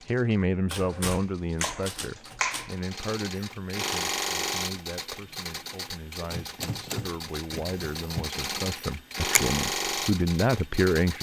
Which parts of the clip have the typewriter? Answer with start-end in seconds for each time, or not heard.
0.7-2.8, 6.2-8.3.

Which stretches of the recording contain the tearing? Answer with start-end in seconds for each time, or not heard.
not heard.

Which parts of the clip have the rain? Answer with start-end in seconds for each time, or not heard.
not heard.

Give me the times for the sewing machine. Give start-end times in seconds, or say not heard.
0.0-11.1.